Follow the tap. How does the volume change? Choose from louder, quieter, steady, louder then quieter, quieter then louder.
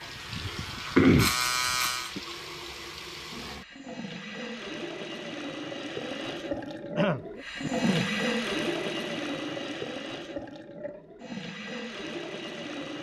louder then quieter.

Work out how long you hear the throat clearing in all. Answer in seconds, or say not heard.
3 s.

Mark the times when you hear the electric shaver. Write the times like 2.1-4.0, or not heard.
0.0-2.1.